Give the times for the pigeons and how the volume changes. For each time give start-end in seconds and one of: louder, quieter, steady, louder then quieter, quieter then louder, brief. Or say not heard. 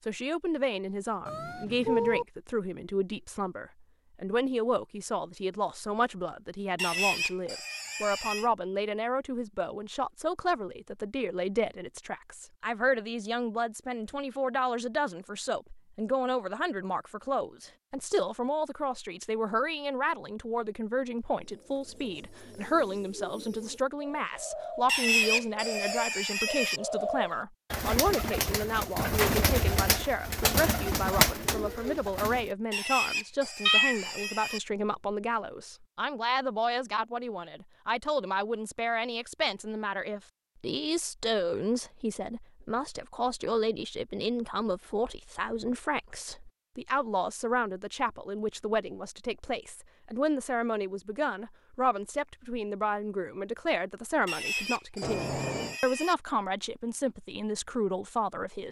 21.4-32.5 louder.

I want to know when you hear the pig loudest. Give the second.
25 s.